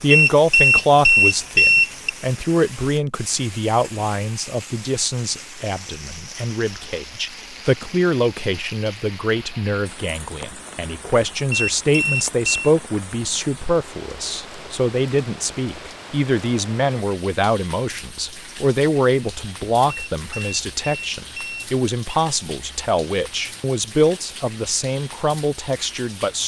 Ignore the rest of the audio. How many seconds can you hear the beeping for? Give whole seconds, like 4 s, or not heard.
5 s.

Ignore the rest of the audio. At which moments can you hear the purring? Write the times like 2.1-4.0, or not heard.
not heard.